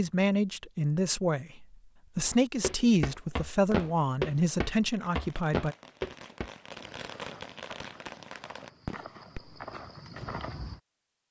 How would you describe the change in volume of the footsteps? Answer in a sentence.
The volume of the footsteps goes down, then up.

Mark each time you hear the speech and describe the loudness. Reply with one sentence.
You can hear the speech from 0.0 to 5.8 s, at a steady volume.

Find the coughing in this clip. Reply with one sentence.
The coughing can't be heard in this clip.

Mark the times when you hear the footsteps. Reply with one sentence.
You can hear the footsteps from 2.2 to 10.8 s.